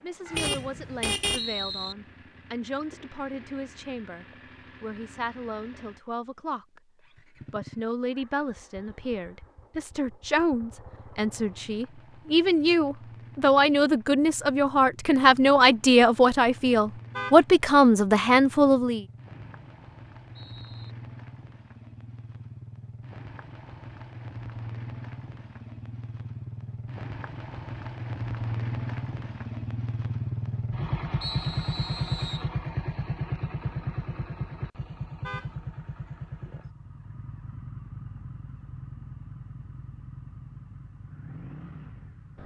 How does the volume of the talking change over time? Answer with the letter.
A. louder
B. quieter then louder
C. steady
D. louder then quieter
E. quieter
A.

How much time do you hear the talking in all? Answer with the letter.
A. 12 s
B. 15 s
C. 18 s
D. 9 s
C.